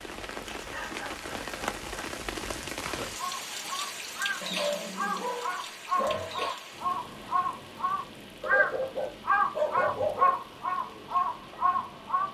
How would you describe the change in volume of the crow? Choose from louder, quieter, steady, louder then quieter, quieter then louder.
louder.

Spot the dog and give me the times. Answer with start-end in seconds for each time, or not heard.
0.5-2.0, 4.4-6.5, 8.4-10.4.